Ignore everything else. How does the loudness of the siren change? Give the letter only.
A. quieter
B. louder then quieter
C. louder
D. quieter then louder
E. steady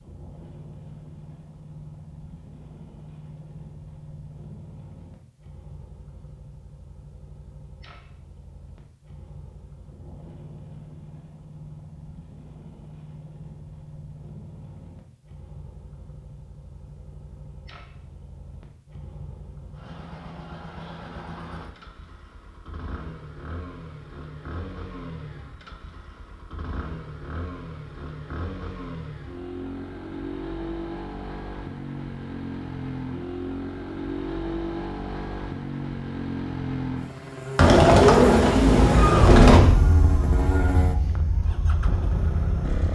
A.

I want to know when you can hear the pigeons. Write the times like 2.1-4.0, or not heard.
37.5-39.6.